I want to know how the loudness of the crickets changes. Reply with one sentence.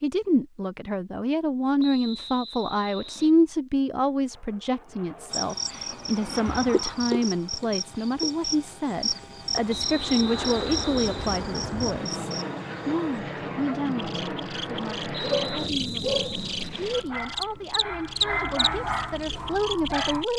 The volume of the crickets goes down, then up.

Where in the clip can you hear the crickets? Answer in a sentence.
You can hear the crickets from 5.3 to 20.3 s.